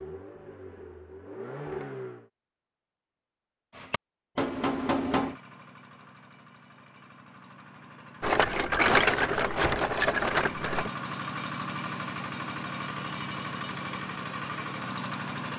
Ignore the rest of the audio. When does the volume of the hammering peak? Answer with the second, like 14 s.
5 s.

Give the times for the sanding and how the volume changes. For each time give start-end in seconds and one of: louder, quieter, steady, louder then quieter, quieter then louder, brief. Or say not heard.
not heard.